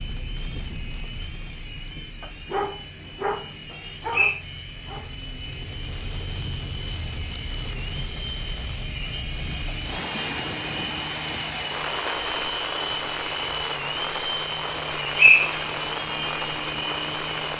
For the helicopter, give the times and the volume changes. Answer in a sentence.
The helicopter can be heard from 0.0 to 17.5 s, getting louder.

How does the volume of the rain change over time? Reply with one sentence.
The volume of the rain goes up.